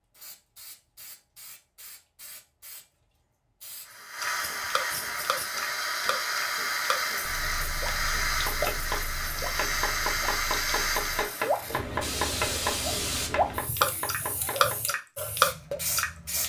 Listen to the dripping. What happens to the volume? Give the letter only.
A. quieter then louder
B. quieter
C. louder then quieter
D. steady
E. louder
A.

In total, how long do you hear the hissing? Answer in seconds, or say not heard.
16 s.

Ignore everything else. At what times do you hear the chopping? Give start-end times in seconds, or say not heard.
8.2-14.8.